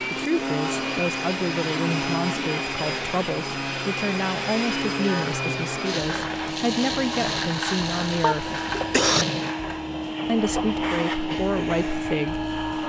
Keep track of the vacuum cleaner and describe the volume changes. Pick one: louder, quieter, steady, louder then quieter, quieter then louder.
steady.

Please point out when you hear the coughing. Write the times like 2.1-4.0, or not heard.
8.2-9.2.